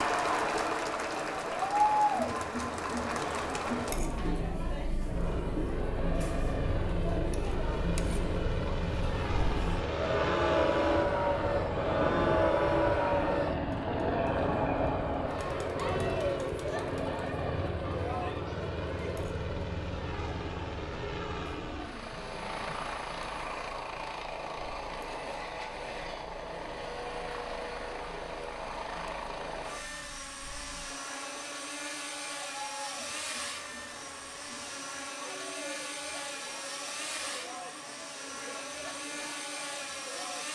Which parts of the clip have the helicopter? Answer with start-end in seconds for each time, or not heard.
5.0-40.5.